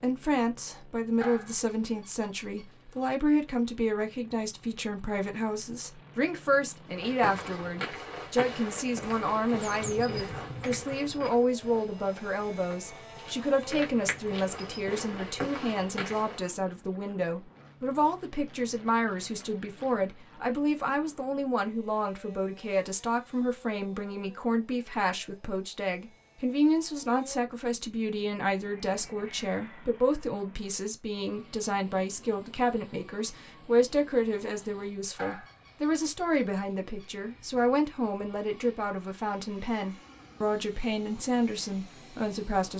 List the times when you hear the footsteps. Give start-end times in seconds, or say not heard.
6.9-16.4.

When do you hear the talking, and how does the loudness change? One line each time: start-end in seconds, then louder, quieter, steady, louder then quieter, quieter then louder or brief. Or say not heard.
0.0-42.7 steady.